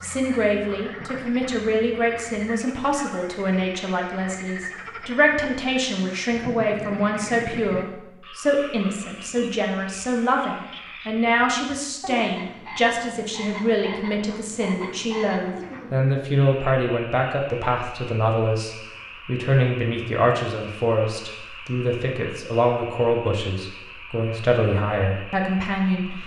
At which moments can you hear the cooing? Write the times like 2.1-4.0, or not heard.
not heard.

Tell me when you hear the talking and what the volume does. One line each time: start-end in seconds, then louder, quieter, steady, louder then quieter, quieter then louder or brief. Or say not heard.
0.0-26.2 steady.